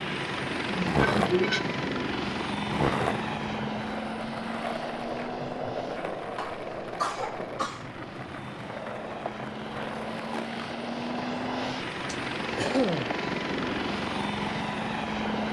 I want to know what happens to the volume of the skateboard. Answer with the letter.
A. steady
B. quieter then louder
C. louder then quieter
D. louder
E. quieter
E.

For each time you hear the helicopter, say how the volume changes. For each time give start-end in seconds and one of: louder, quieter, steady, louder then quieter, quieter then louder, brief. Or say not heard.
0.0-15.4 quieter then louder.